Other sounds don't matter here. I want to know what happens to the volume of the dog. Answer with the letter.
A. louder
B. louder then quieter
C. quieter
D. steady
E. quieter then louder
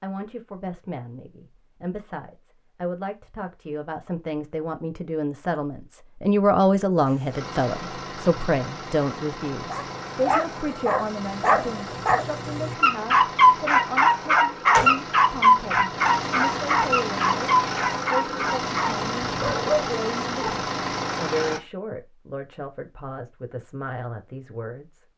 B.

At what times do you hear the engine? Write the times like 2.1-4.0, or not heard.
7.0-21.6.